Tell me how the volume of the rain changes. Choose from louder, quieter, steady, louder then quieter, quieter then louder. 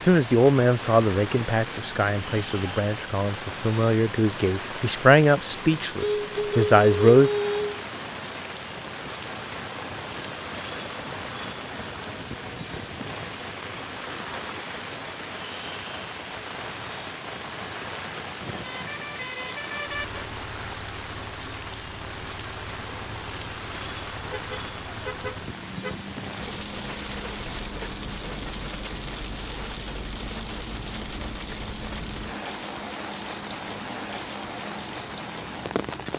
steady.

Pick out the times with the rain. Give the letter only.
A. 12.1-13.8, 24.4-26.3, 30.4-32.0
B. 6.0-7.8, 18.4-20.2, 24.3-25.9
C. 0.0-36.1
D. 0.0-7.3
C.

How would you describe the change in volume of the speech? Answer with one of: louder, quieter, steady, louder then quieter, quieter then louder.
quieter then louder.